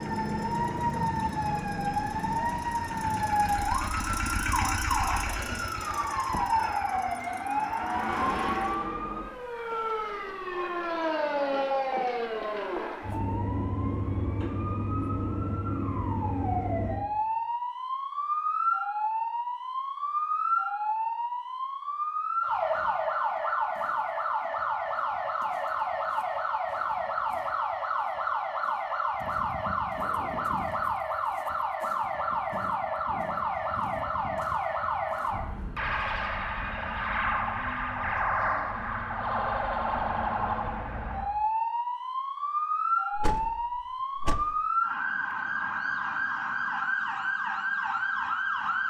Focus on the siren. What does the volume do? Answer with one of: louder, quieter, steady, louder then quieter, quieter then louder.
steady.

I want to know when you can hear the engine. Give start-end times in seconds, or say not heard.
0.0-8.8.